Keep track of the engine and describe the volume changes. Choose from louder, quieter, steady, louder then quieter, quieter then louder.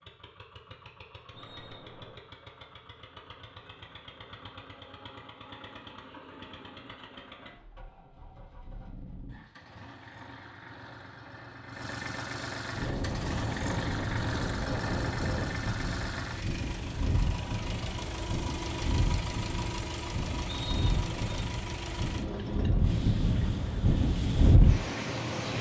louder.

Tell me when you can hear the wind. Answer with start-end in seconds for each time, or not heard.
12.7-25.5.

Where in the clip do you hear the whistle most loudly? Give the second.
21 s.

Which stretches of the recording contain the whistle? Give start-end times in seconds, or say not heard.
1.4-2.2, 20.4-21.4.